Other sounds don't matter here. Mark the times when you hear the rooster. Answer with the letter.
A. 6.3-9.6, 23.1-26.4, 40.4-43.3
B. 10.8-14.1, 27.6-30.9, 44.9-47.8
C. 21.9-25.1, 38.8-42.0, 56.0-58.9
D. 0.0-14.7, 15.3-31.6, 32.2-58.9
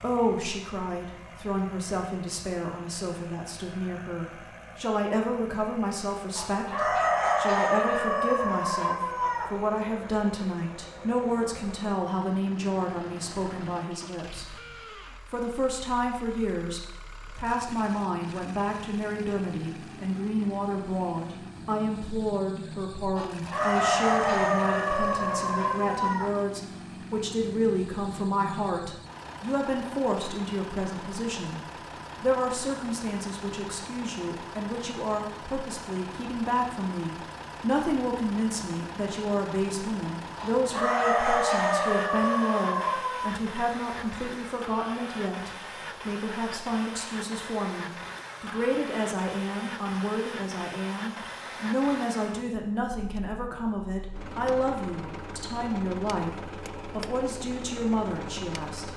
A.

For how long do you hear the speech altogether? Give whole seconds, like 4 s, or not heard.
58 s.